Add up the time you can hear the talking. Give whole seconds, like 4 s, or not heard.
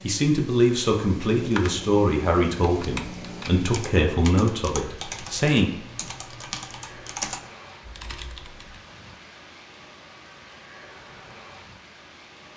6 s.